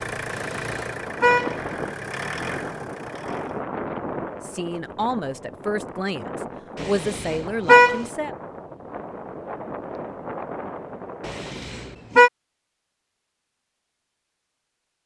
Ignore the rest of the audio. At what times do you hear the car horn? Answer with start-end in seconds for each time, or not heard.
0.3-1.6, 6.8-8.0, 11.2-12.3.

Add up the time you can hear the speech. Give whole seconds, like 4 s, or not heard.
4 s.